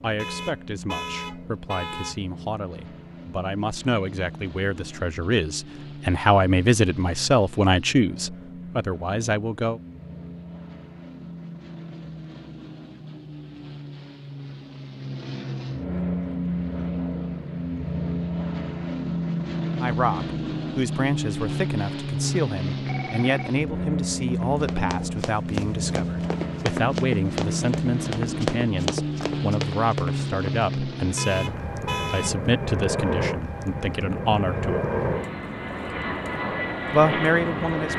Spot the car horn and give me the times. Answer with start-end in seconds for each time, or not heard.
0.1-2.1, 31.1-32.4.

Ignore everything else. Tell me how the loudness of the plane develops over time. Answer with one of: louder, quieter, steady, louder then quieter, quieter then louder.
louder.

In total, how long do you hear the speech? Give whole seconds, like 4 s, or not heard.
26 s.